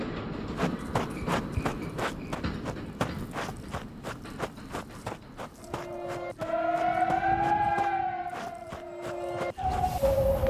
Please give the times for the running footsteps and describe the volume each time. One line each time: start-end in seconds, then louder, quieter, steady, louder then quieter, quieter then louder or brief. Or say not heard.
0.5-10.4 quieter.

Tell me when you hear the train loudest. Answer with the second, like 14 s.
1 s.